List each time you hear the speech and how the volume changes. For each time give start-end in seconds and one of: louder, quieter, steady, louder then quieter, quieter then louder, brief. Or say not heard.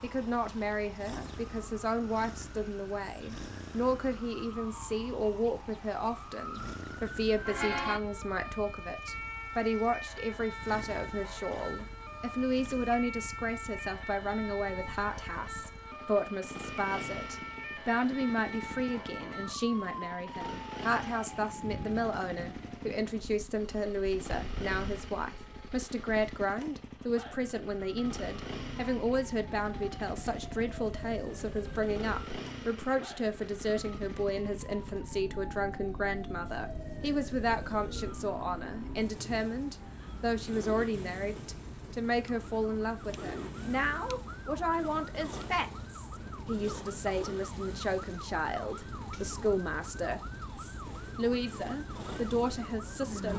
0.0-53.3 steady.